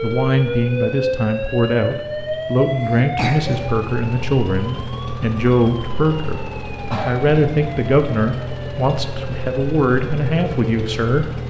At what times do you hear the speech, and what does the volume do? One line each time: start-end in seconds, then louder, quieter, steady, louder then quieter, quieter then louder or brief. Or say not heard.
0.0-11.3 steady.